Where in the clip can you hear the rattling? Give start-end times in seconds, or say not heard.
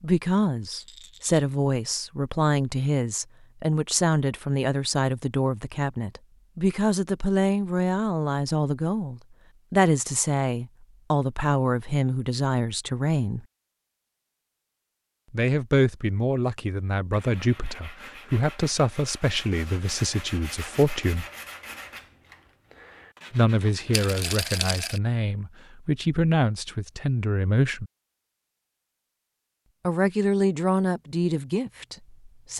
0.7-1.4, 23.9-25.0.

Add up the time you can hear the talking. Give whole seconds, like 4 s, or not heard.
27 s.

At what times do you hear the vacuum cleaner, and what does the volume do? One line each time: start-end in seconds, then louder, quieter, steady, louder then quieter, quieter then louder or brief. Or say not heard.
not heard.